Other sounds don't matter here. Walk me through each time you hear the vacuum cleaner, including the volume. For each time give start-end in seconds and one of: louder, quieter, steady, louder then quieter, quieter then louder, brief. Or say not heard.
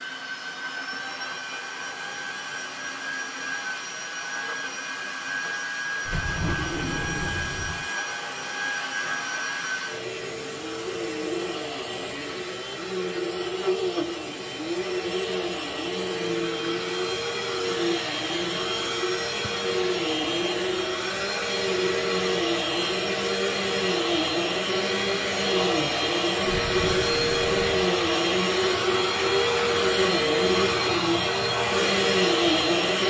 0.0-33.0 louder.